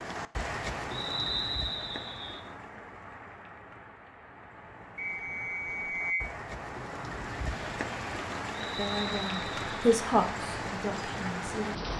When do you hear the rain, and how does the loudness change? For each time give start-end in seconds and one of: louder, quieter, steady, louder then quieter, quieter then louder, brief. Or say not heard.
0.0-11.9 quieter then louder.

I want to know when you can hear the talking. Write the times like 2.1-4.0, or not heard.
8.6-11.8.